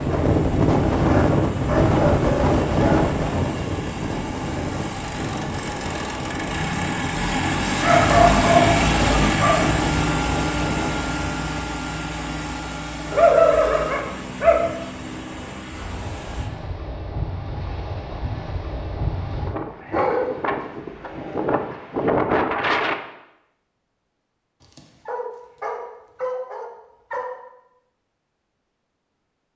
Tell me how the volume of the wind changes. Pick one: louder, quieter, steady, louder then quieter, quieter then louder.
quieter then louder.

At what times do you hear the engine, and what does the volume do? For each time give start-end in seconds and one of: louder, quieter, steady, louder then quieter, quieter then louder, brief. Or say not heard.
0.0-16.5 louder then quieter.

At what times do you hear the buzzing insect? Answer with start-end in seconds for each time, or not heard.
not heard.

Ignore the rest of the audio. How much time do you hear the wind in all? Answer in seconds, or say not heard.
23 s.